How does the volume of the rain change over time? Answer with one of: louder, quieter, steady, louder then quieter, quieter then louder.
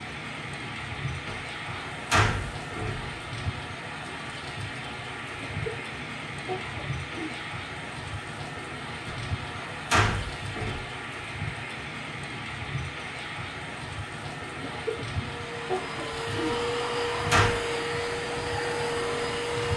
steady.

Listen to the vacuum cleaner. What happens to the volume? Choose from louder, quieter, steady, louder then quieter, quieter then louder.
louder.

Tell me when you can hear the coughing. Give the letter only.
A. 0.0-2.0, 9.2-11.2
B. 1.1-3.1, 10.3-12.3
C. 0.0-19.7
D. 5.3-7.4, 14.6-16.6
D.